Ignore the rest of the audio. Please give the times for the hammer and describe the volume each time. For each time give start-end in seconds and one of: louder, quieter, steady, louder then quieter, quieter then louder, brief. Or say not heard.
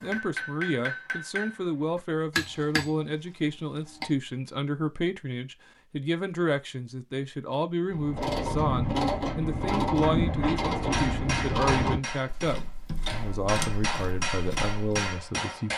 0.0-4.1 louder then quieter
10.7-15.7 quieter then louder.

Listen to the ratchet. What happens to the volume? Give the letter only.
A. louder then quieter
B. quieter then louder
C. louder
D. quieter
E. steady
D.